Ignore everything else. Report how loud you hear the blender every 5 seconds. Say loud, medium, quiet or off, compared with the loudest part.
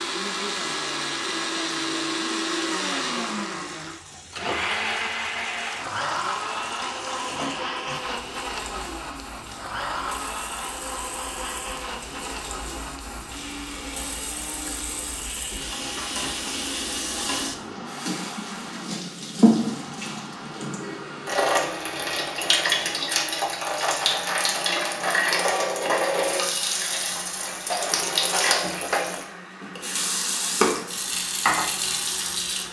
loud, loud, medium, medium, quiet, quiet, quiet.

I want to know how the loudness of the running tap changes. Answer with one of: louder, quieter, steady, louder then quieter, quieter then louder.
louder.